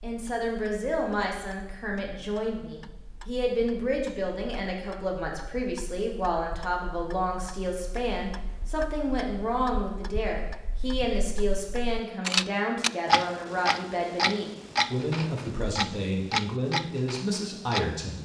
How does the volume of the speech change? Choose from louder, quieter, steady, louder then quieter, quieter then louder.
steady.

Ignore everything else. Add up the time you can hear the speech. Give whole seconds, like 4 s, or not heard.
18 s.